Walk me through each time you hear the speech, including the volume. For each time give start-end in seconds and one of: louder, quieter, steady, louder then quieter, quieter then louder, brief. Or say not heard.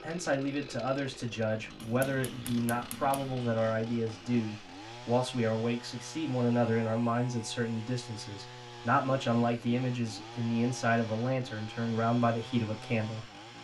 0.0-13.6 steady.